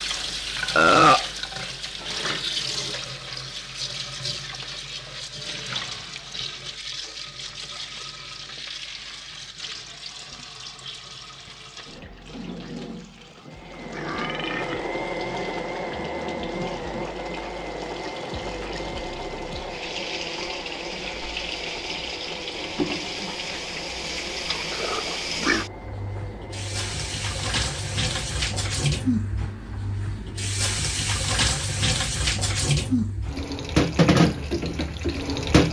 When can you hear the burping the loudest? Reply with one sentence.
The volume of the burping peaks at 1 second.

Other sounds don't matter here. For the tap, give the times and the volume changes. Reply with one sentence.
You can hear the tap from 0.0 to 35.6 s, getting quieter then louder.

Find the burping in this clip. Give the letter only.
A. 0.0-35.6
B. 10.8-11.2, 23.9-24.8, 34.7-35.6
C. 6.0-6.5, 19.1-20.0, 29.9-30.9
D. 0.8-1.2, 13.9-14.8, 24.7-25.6
D.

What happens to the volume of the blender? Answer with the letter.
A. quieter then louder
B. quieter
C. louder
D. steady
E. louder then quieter
B.